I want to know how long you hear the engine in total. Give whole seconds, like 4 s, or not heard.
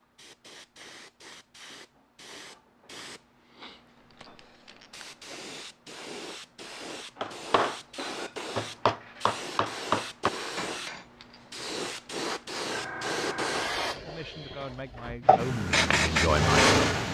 2 s.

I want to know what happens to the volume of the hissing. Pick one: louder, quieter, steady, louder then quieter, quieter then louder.
louder.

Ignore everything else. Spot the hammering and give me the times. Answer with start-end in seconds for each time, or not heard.
7.2-11.1.